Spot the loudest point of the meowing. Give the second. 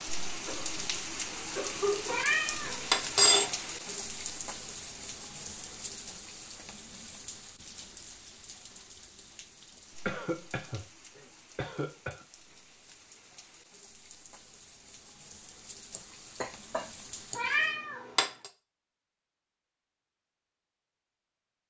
3 s.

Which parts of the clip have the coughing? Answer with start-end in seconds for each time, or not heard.
0.5-2.4, 10.1-10.8, 11.6-12.2, 15.9-17.4.